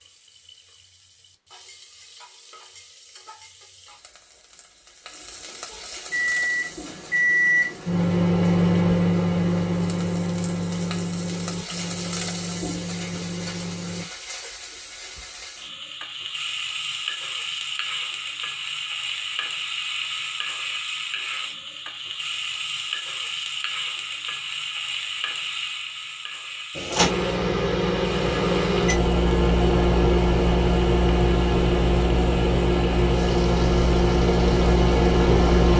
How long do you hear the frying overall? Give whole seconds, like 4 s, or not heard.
36 s.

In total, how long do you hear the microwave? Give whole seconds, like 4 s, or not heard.
17 s.